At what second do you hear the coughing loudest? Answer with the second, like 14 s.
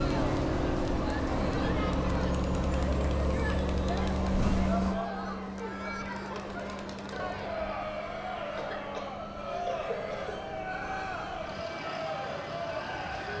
10 s.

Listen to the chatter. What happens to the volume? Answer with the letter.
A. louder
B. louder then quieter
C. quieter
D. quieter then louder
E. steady
E.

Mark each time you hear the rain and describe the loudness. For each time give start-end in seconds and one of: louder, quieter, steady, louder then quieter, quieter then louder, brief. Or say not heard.
not heard.